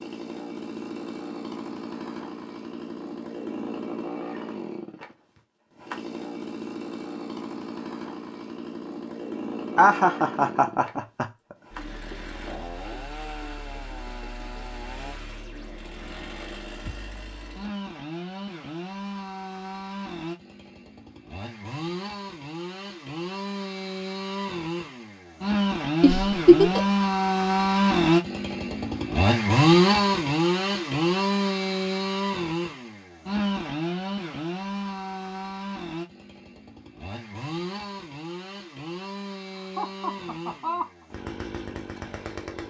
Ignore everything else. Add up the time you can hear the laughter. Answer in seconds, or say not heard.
4 s.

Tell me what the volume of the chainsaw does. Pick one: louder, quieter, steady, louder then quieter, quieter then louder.
louder then quieter.